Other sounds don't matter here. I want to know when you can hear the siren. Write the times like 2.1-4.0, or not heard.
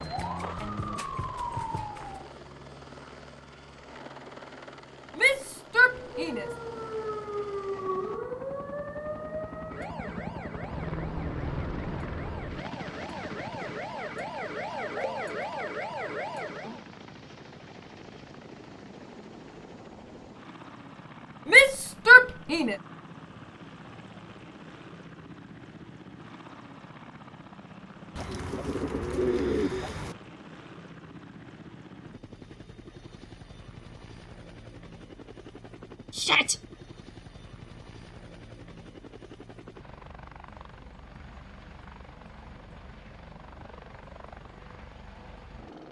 0.0-2.3, 6.0-16.9.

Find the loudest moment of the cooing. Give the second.
29 s.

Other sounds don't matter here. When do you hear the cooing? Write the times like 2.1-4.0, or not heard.
28.1-30.1.